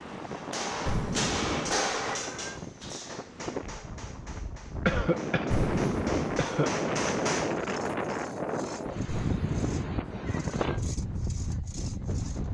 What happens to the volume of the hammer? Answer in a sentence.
The loudness of the hammer goes down, then up.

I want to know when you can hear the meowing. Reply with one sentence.
You can hear the meowing from 0.8 to 2.6 s, from 5.5 to 6.5 s and from 9.1 to 10.6 s.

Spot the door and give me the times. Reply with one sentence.
The door can't be heard in this clip.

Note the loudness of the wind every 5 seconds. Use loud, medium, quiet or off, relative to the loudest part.
medium, loud, loud.